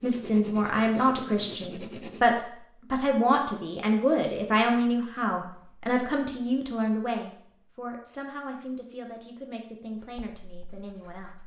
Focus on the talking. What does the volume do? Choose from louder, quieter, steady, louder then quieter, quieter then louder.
quieter.